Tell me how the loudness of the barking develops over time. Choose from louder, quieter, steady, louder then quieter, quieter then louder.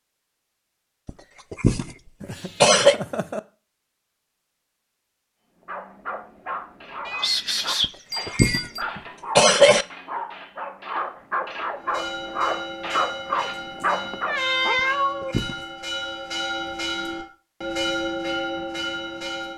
louder.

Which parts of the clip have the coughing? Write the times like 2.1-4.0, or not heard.
1.1-3.0, 7.8-9.8, 14.8-15.7.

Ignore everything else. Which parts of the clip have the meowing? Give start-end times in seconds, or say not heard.
2.2-3.4, 7.0-8.8, 13.3-15.3.